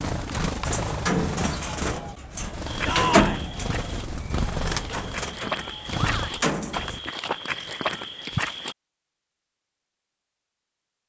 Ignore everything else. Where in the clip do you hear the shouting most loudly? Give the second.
3 s.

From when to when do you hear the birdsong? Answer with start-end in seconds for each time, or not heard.
0.0-7.0.